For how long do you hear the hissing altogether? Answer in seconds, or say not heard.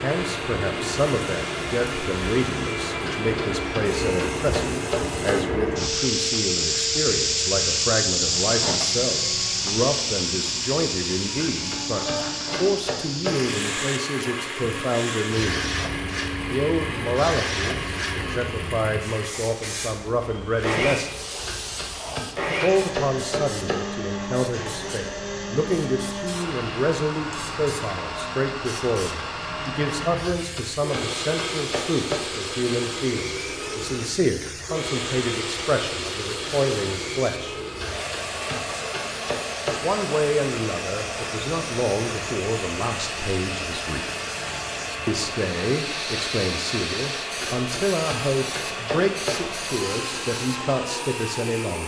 52 s.